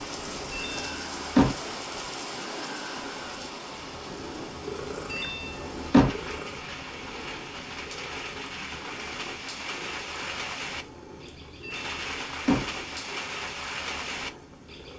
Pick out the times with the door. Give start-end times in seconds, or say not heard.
0.5-1.6, 5.1-6.4, 11.6-12.8.